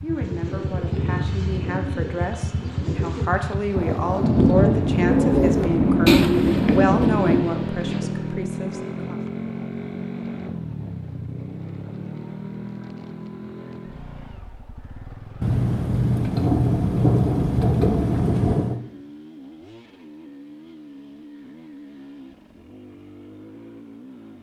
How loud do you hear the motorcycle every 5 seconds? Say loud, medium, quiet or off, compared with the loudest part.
loud, loud, medium, quiet, quiet.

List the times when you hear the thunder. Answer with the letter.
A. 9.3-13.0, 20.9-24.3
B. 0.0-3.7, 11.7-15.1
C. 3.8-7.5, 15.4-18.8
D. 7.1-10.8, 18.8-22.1
C.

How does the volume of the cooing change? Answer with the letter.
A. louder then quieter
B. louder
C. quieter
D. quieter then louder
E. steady
A.